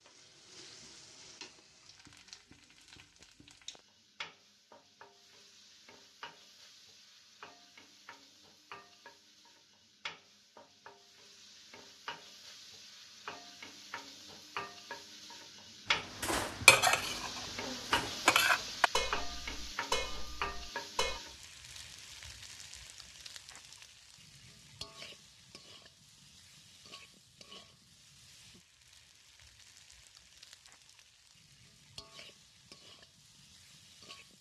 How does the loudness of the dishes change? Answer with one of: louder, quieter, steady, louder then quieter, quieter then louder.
quieter.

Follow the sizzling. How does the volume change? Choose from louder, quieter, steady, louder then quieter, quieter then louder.
louder then quieter.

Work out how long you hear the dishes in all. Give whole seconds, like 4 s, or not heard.
5 s.